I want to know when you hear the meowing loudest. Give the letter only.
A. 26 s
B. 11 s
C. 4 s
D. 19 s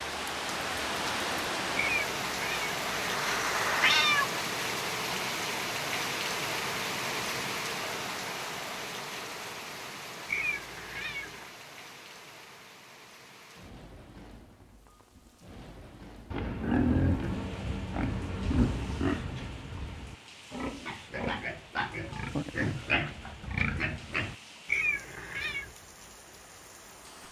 C.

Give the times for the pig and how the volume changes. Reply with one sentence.
The pig can be heard from 16.3 to 24.4 s, getting quieter then louder.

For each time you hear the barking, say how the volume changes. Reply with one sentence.
The barking can't be heard in this clip.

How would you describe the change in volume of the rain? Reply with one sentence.
The loudness of the rain goes down.